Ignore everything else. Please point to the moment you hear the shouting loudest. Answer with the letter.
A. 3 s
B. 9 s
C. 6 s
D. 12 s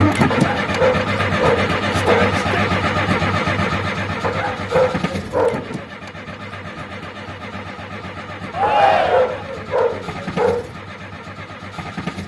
B.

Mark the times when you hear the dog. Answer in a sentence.
The dog can be heard from 0.3 to 2.4 s, from 4.2 to 5.8 s and from 8.6 to 10.7 s.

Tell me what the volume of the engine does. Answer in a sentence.
The volume of the engine goes down.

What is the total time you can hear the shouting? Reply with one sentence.
You can hear the shouting for 2 seconds altogether.